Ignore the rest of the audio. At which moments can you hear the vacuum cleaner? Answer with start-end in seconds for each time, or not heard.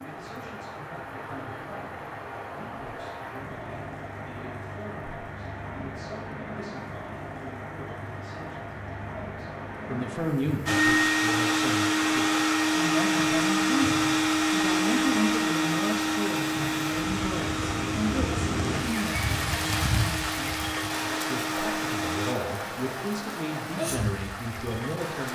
10.7-22.4.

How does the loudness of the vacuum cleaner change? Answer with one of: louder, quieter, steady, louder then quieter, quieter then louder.
quieter.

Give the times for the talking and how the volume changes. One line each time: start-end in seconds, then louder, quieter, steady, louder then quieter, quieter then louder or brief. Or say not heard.
0.0-25.3 louder.